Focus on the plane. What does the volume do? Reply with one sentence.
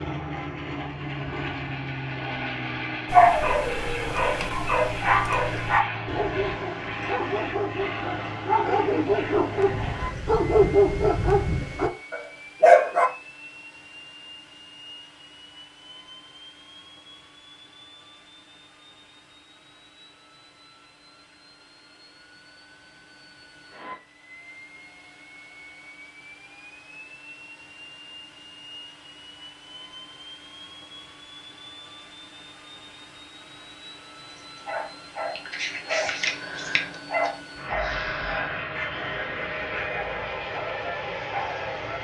The volume of the plane goes down, then up.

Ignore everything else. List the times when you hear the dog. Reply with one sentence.
The dog can be heard from 3.1 to 13.1 s and from 34.3 to 41.9 s.